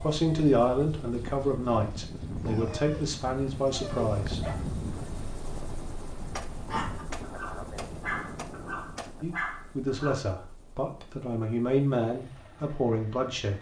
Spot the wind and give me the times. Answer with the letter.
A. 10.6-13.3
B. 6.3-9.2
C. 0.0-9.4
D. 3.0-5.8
C.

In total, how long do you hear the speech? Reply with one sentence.
You can hear the speech for 9 seconds altogether.